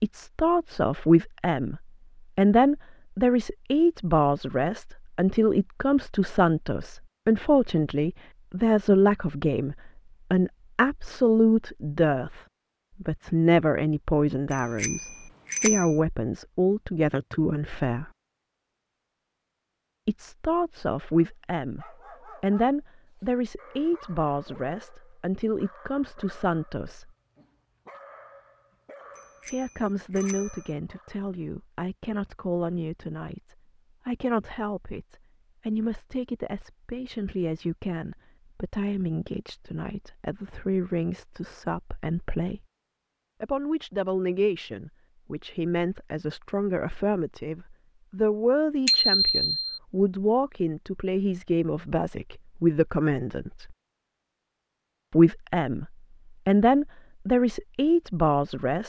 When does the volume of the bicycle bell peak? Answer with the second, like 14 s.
49 s.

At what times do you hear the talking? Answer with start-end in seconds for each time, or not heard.
0.0-12.4, 13.0-18.1, 20.1-27.1, 29.5-42.6, 43.4-53.8, 55.1-58.8.